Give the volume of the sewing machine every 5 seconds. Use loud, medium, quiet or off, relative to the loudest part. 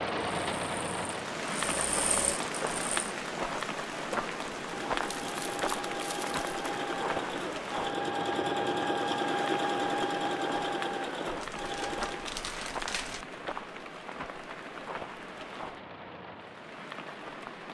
medium, loud, loud, off.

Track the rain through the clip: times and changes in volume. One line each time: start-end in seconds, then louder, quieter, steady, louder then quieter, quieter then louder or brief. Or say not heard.
0.0-17.6 quieter.